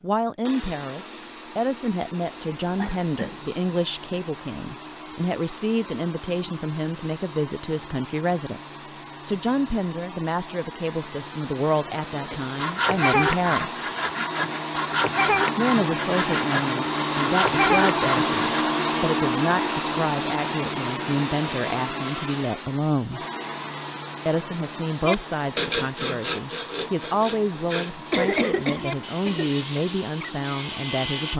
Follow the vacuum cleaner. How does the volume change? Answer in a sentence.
The loudness of the vacuum cleaner goes up, then down.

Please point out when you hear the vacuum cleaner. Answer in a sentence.
The vacuum cleaner can be heard from 0.2 to 31.3 s.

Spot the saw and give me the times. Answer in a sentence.
You can hear the saw from 12.3 to 18.6 s and from 25.1 to 31.3 s.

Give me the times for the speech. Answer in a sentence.
You can hear the speech from 0.0 to 13.8 s, from 15.6 to 23.2 s and from 24.2 to 31.3 s.